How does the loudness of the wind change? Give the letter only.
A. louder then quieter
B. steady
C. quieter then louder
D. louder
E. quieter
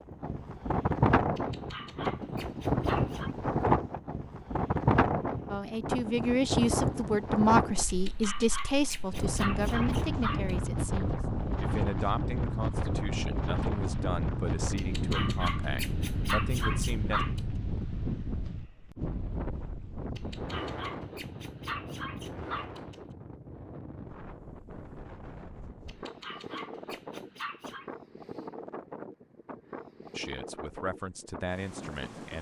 E.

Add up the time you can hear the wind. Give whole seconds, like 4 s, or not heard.
32 s.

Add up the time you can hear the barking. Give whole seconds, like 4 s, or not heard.
12 s.